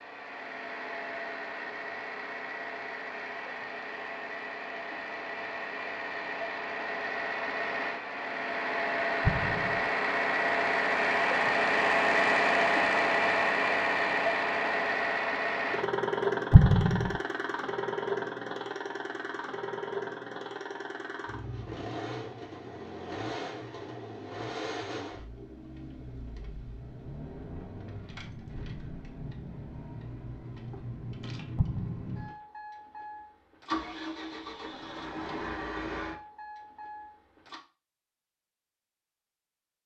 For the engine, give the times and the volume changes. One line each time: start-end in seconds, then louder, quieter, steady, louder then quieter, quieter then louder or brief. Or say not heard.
0.0-37.6 louder then quieter.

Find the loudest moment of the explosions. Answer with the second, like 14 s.
17 s.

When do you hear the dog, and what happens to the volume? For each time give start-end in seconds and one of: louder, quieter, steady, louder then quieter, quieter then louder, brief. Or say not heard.
not heard.